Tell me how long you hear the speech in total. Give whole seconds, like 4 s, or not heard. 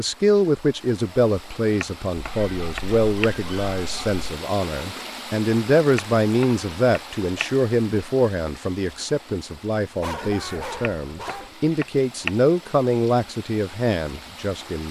15 s.